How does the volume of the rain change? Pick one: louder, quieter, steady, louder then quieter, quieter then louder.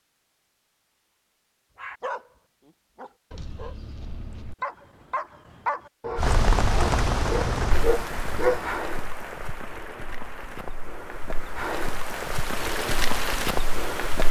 quieter then louder.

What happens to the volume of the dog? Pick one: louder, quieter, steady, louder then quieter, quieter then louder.
louder.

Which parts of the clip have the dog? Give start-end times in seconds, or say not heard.
1.8-8.7.